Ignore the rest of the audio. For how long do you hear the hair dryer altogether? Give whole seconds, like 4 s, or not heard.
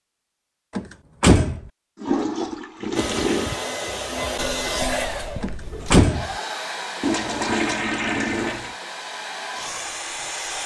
8 s.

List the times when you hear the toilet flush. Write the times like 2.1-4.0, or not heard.
2.0-3.5, 7.0-8.8.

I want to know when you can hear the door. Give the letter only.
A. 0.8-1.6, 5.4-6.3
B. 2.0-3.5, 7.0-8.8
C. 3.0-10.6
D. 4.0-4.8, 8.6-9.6
A.